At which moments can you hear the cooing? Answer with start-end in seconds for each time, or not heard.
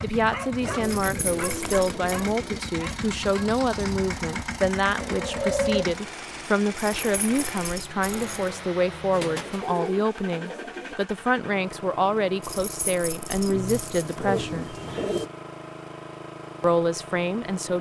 0.6-2.6, 5.0-6.0, 9.1-10.9, 13.4-15.3.